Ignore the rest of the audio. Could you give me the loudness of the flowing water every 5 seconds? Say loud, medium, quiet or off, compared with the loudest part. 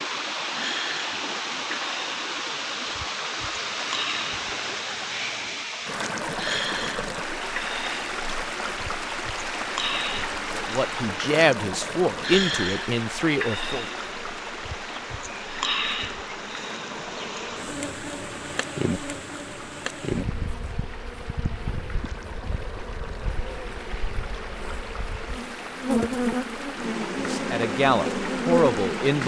loud, loud, loud, medium, medium, medium.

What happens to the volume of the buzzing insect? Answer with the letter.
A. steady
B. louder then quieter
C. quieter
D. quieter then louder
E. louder
E.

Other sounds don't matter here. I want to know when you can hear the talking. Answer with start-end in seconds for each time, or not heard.
10.5-13.8, 27.2-29.2.